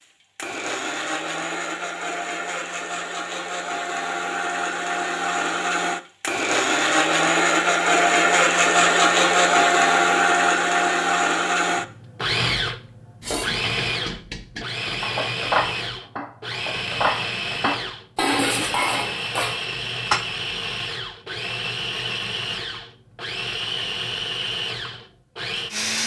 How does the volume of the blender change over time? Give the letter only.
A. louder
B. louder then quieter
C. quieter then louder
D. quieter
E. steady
B.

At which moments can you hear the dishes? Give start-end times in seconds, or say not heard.
13.2-20.2.